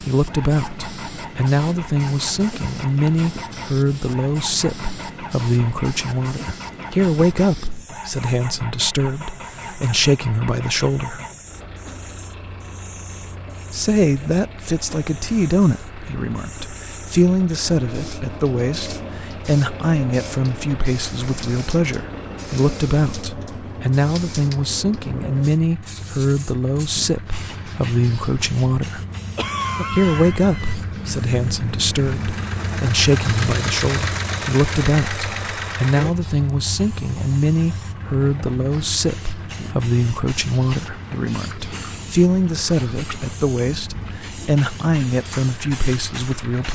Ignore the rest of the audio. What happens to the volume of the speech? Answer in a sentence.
The loudness of the speech stays about the same.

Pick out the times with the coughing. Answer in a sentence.
You can hear the coughing from 29.4 to 30.8 s.